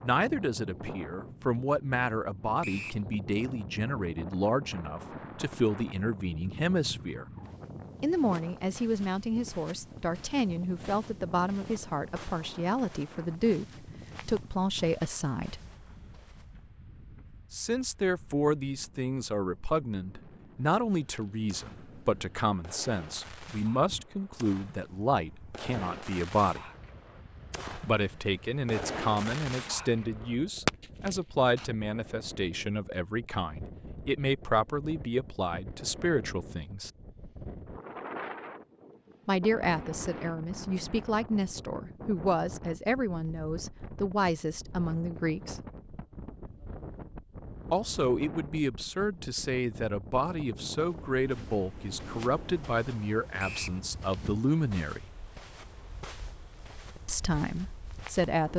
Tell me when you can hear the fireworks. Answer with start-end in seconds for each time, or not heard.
21.1-31.7.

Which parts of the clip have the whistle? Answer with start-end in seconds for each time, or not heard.
2.6-3.0, 53.4-53.8.